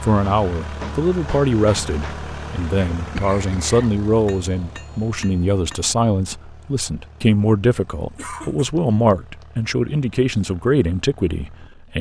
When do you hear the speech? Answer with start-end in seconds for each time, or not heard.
0.0-11.9.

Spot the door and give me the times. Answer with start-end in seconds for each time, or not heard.
not heard.